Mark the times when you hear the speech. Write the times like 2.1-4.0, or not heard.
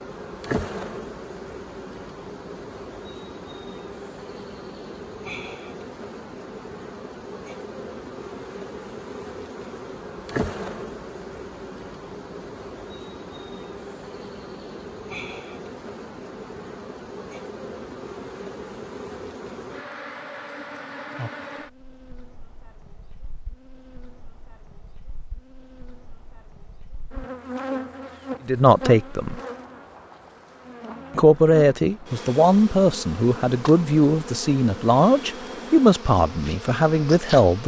28.4-29.4, 31.1-37.6.